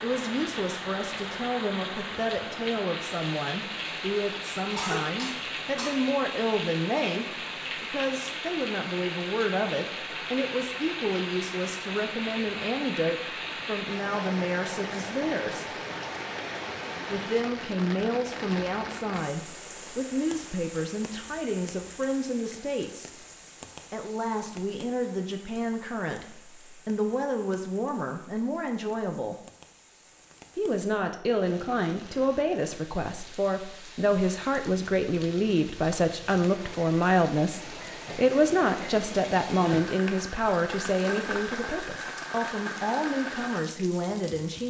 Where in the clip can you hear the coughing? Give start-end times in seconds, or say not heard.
4.7-6.0.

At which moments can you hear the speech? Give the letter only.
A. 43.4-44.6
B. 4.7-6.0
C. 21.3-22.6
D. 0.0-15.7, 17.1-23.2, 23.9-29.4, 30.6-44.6
D.